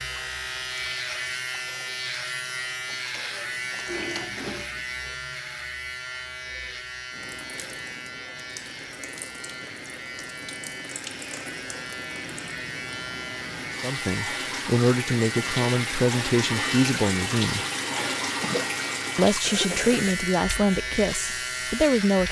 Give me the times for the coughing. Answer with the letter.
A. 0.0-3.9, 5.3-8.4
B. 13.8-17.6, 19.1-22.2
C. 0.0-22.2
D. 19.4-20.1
D.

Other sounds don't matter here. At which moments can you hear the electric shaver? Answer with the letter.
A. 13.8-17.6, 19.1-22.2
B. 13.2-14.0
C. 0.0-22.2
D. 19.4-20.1
C.